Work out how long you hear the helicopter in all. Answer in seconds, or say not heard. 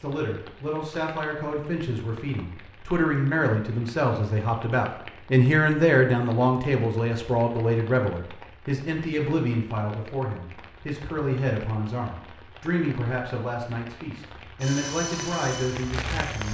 2 s.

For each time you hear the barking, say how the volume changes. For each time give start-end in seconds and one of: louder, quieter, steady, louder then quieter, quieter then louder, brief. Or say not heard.
not heard.